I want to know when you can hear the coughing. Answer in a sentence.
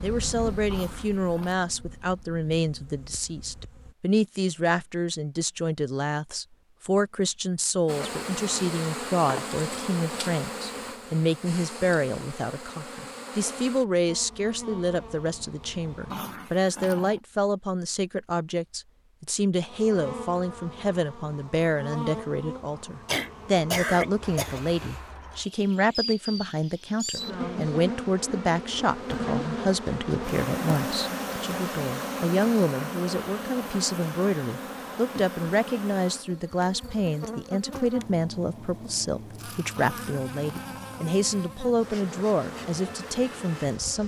The coughing can be heard from 23.1 to 24.6 s.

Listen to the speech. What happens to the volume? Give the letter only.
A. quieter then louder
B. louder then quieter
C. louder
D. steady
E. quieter
D.